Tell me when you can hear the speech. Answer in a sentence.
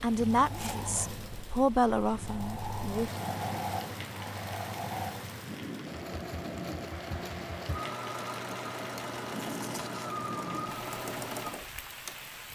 You can hear the speech from 0.0 to 3.2 s.